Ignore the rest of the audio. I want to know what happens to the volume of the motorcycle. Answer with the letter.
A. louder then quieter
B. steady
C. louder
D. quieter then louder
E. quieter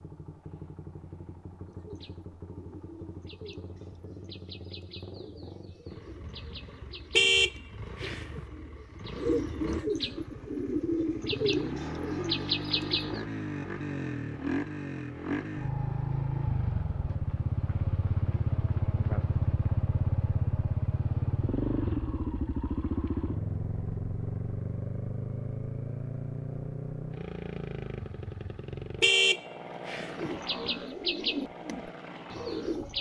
A.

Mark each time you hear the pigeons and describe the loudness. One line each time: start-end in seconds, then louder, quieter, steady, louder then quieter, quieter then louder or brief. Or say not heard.
1.6-13.2 louder
30.1-32.9 brief.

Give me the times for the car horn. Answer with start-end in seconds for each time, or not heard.
7.2-8.4, 29.0-30.3.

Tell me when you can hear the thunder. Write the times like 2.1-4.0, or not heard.
not heard.